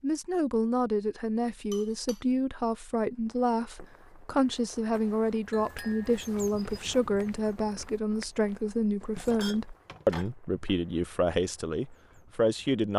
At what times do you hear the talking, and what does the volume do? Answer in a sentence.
You can hear the talking from 0.0 to 12.9 s, at a steady volume.